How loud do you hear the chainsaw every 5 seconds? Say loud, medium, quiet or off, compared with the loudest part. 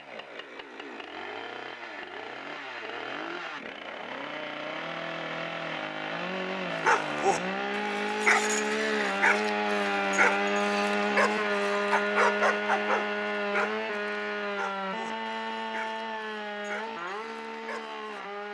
medium, loud, loud, medium.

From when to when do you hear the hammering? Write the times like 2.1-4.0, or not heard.
not heard.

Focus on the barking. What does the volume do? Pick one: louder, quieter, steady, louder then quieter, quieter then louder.
quieter.